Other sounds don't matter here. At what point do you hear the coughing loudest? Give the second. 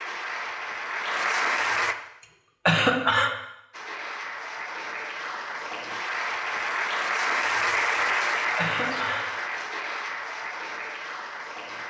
3 s.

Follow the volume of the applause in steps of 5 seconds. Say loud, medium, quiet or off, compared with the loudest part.
loud, loud, medium.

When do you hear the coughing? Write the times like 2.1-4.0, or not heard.
2.6-3.4, 8.6-9.2.